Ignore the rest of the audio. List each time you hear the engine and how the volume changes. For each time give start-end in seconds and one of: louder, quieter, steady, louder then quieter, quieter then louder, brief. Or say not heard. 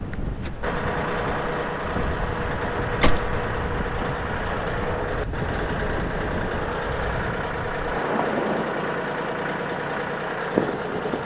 0.0-11.2 steady.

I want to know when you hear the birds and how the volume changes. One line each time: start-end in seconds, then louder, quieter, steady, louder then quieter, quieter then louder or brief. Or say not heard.
not heard.